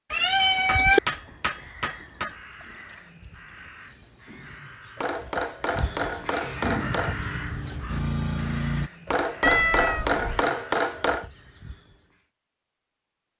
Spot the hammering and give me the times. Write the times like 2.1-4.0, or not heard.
0.3-2.4, 5.0-7.2, 9.1-11.2.